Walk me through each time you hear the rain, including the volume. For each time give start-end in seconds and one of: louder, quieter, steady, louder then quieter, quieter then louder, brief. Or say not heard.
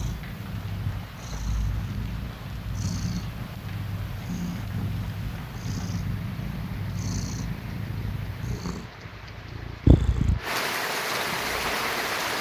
0.0-12.3 louder.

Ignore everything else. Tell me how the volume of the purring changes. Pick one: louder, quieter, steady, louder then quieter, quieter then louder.
louder.